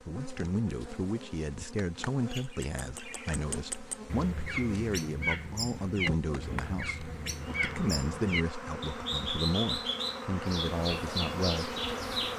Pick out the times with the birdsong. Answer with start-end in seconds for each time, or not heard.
2.2-12.3.